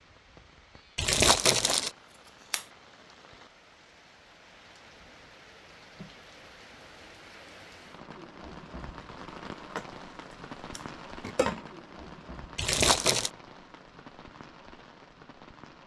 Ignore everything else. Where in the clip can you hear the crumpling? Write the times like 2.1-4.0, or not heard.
0.9-1.9, 12.6-13.3.